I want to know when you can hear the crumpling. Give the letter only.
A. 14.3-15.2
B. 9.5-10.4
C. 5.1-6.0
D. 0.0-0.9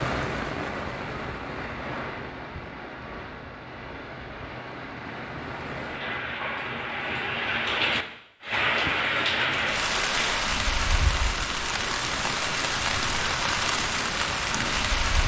B.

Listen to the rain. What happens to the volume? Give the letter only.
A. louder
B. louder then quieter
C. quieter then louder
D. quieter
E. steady
A.